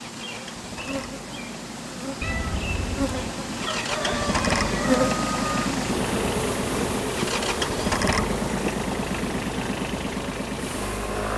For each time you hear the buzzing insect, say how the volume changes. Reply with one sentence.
The buzzing insect can be heard from 0.0 to 11.3 s, getting louder then quieter.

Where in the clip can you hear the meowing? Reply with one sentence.
The meowing can be heard from 2.2 to 3.4 s.